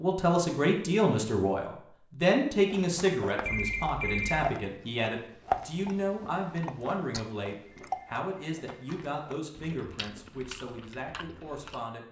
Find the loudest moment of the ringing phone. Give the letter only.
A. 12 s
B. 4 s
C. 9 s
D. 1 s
B.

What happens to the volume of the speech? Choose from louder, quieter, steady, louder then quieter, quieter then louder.
quieter.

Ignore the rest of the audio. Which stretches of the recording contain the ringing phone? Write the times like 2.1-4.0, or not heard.
3.5-4.5, 7.7-9.1.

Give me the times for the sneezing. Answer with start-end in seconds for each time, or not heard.
not heard.